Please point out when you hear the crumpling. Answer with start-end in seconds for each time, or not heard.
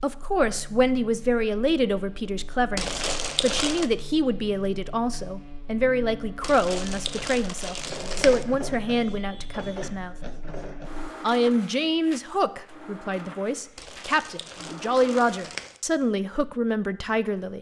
2.8-3.9, 6.4-8.4, 13.8-15.8.